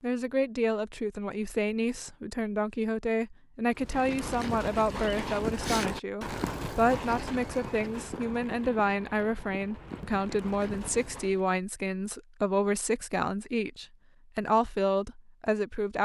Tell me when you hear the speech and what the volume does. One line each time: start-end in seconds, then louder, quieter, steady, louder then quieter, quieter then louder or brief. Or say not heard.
0.0-16.0 steady.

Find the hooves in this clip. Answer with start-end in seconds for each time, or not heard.
3.8-11.4.